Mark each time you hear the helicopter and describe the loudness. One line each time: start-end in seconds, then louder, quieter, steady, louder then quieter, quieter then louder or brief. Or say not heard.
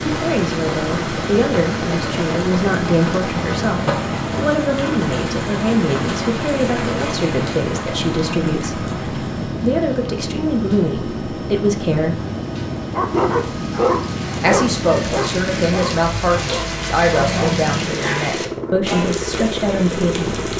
0.0-20.5 steady.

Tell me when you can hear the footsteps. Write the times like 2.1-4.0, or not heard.
not heard.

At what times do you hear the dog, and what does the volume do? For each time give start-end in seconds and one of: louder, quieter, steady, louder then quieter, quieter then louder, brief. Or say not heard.
12.9-18.3 quieter.